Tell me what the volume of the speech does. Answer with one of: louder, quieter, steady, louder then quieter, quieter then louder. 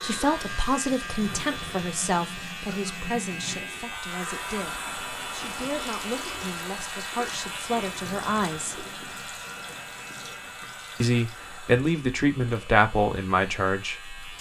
quieter then louder.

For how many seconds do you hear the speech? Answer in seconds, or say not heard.
12 s.